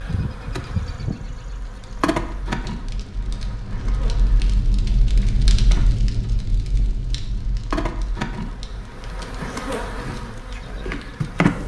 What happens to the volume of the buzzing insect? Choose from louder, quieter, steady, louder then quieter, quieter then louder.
quieter then louder.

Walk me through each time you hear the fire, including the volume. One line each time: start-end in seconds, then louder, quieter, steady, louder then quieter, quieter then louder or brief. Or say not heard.
0.0-11.3 louder then quieter.